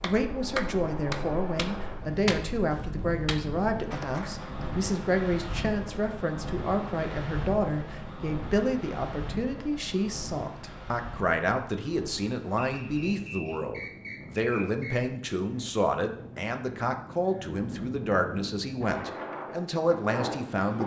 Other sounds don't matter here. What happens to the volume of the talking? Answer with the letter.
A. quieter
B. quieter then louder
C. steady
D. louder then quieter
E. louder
C.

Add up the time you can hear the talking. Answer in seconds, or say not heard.
21 s.